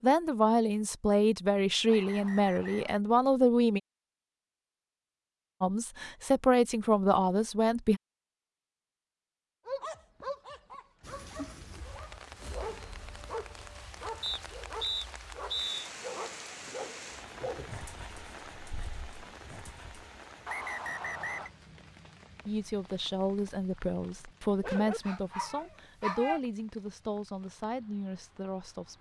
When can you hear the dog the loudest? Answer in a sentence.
The loudest moment of the dog is at 26 seconds.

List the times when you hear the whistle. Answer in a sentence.
You can hear the whistle from 1.9 to 3.0 s, from 14.2 to 15.8 s and from 20.4 to 21.5 s.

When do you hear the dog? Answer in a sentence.
You can hear the dog from 9.7 to 20.1 s and from 24.6 to 26.4 s.